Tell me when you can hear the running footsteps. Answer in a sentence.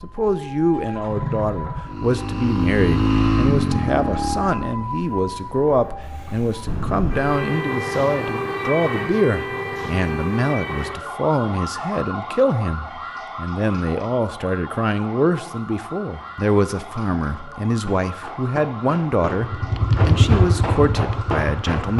The running footsteps can be heard from 17.8 to 21.9 s.